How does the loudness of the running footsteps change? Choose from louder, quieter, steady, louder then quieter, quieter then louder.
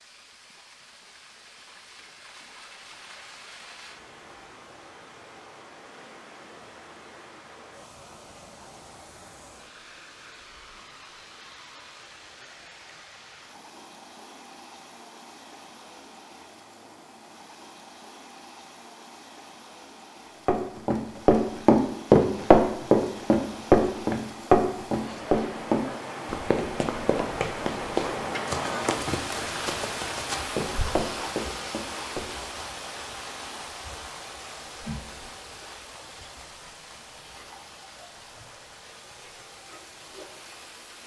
quieter.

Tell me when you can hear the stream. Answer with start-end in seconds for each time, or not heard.
0.0-41.0.